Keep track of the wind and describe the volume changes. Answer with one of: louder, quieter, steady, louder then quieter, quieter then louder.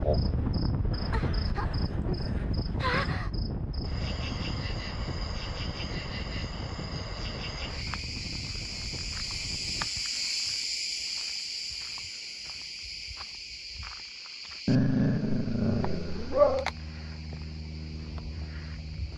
quieter.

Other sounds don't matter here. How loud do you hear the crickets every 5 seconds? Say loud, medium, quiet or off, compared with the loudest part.
loud, loud, loud, medium.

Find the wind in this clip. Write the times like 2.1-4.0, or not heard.
0.0-9.9.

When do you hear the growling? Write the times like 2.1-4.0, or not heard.
0.9-3.2, 14.7-16.6.